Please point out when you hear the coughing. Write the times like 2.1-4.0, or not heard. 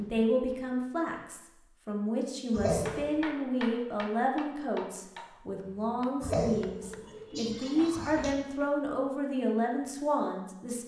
2.5-3.2, 6.2-8.3.